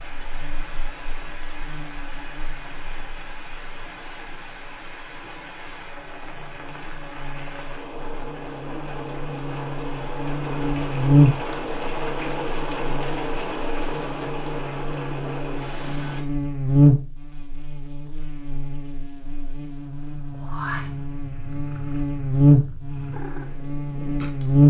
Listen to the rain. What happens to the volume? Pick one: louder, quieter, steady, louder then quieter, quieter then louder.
louder.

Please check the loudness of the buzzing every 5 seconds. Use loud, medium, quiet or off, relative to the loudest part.
quiet, quiet, loud, loud, loud.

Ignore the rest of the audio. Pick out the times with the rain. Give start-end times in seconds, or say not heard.
0.0-16.2.